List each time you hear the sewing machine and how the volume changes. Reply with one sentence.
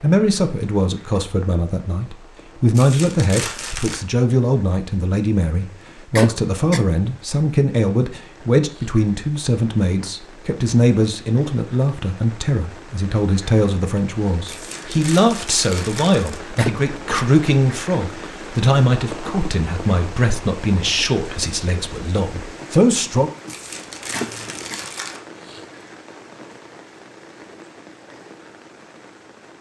You can't hear the sewing machine here.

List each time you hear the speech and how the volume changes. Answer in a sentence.
You can hear the speech from 0.0 to 23.3 s, at a steady volume.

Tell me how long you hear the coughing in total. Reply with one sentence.
You can hear the coughing for 2 seconds altogether.